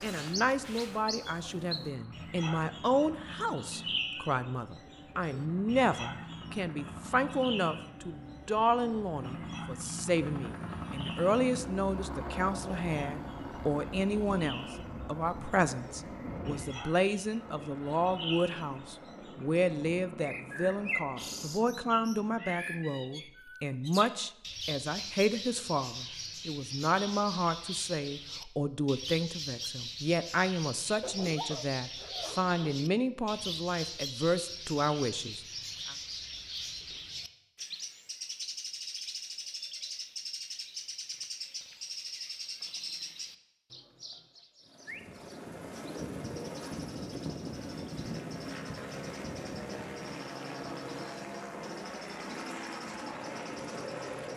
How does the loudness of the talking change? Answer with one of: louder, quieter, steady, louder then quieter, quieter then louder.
steady.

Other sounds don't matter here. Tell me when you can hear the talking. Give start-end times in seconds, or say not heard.
0.0-36.0.